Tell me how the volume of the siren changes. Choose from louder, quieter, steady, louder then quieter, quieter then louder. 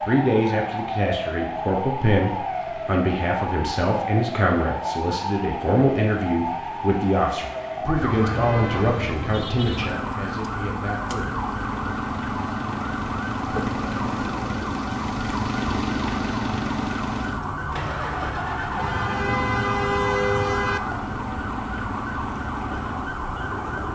steady.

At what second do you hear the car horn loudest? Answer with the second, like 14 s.
20 s.